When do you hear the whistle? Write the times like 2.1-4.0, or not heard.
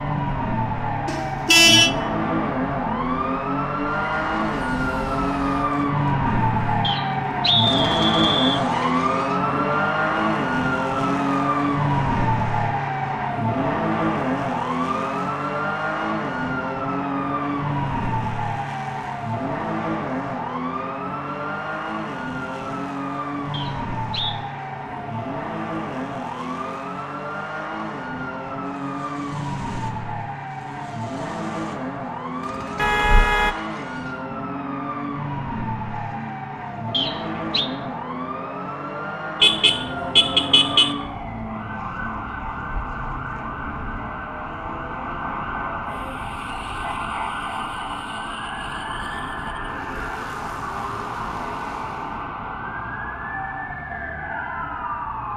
6.8-8.6, 23.5-24.4, 36.9-37.7.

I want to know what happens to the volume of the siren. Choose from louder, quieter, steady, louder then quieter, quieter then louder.
quieter.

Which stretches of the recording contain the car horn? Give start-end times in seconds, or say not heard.
1.1-1.9, 32.8-33.5, 39.4-41.0.